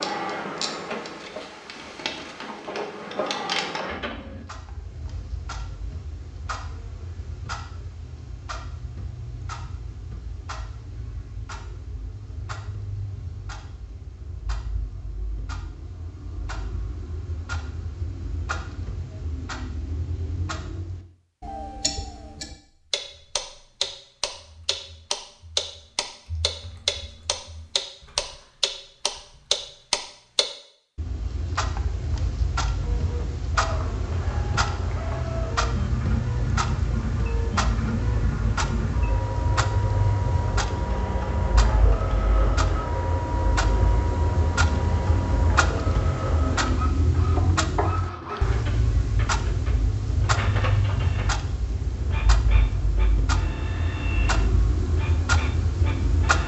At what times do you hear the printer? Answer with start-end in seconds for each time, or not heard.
0.0-4.5, 32.8-56.4.